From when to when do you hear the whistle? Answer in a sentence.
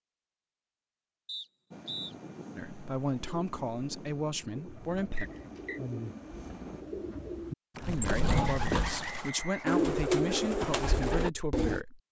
You can hear the whistle from 1.2 to 2.1 s, from 5.2 to 5.8 s and from 8.3 to 9.8 s.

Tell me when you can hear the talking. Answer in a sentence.
The talking can be heard from 2.5 to 5.3 s and from 7.8 to 12.0 s.